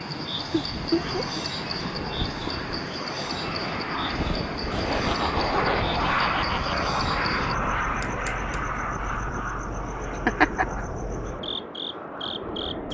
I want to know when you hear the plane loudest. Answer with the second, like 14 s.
6 s.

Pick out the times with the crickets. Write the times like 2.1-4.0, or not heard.
0.0-12.8.